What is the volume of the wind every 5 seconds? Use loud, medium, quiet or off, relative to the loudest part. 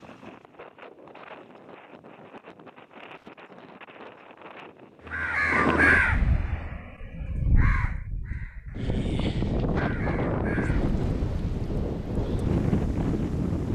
quiet, loud, loud.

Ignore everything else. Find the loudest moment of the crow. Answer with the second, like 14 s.
6 s.